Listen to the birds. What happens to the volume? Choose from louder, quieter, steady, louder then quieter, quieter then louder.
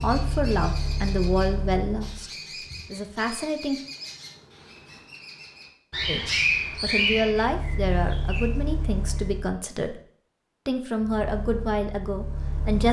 louder.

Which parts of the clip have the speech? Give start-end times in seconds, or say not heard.
0.0-3.8, 6.0-10.0, 10.7-12.8.